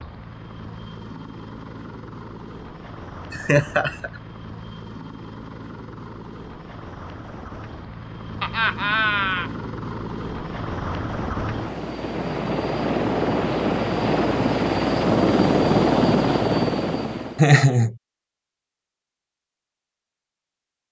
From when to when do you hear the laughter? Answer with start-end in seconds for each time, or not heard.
3.3-4.2, 8.4-9.5, 17.4-17.9.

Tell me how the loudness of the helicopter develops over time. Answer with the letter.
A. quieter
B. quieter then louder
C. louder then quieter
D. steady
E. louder
E.